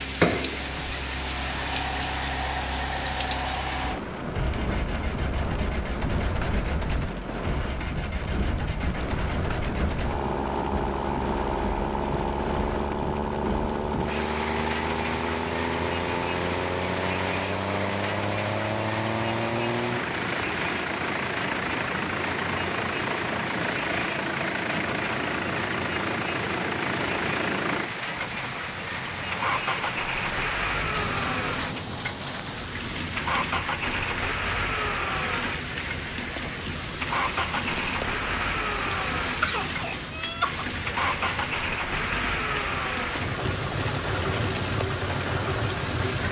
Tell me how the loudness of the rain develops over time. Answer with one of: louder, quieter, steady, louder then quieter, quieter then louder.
steady.